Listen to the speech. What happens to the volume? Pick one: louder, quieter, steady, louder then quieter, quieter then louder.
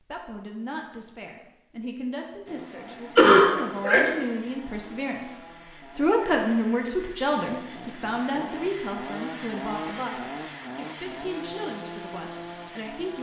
louder then quieter.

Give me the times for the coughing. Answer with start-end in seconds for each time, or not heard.
3.1-4.0.